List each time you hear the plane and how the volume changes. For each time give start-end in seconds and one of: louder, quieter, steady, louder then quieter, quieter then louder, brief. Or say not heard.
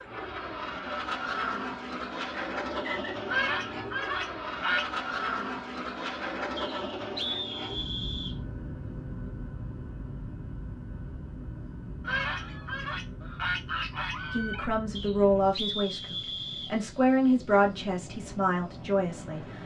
0.0-19.6 quieter.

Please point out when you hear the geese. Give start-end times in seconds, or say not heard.
3.2-4.8, 12.0-14.7.